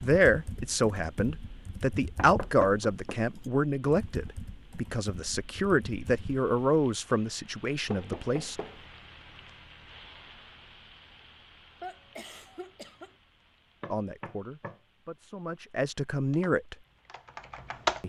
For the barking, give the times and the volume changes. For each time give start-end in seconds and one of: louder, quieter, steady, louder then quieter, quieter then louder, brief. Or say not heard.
not heard.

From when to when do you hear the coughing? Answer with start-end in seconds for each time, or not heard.
11.8-13.2.